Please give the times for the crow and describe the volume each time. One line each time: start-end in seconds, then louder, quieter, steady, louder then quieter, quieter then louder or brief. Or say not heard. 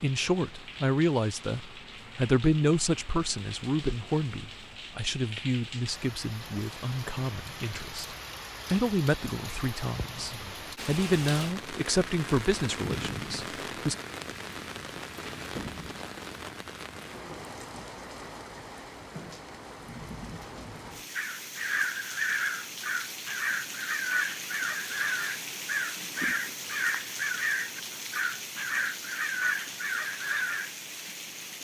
21.1-30.7 steady.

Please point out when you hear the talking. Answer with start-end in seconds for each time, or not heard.
0.0-13.9.